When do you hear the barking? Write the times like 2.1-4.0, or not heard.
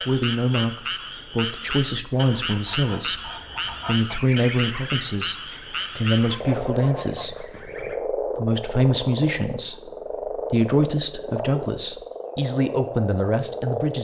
not heard.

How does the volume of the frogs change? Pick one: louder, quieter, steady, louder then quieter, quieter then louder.
steady.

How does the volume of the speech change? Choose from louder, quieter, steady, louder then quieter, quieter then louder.
steady.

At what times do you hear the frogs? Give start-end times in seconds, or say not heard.
0.0-13.9.